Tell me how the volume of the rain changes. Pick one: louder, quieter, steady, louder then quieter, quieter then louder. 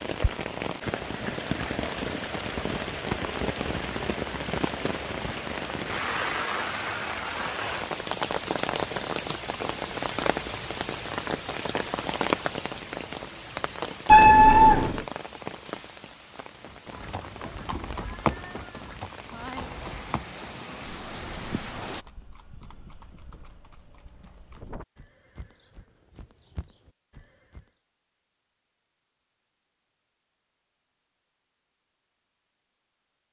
quieter.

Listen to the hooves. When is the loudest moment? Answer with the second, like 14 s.
18 s.